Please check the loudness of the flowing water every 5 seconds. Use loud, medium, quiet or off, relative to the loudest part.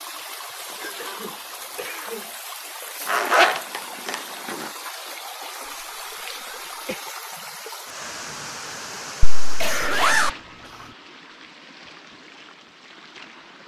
loud, loud, medium.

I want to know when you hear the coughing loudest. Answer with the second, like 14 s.
10 s.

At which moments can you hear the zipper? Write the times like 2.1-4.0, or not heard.
3.0-4.5, 9.2-10.3.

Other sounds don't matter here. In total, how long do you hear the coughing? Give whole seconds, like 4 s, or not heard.
3 s.